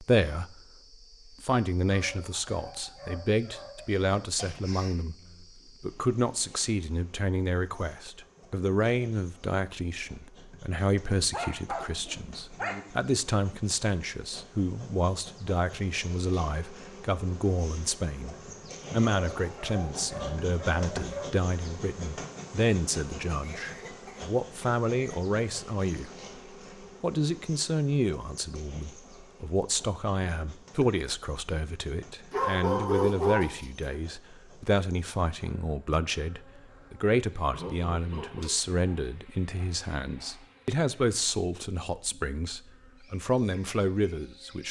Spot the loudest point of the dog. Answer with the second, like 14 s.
33 s.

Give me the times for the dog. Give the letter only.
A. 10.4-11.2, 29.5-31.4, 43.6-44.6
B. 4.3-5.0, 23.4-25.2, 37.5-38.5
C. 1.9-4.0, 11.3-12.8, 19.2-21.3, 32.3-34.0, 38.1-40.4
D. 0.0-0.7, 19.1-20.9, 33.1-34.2
C.